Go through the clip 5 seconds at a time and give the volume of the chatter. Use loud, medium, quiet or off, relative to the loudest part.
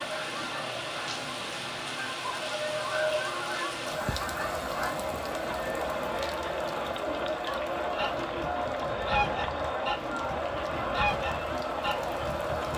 medium, loud, loud.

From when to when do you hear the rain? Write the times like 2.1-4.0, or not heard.
0.0-12.7.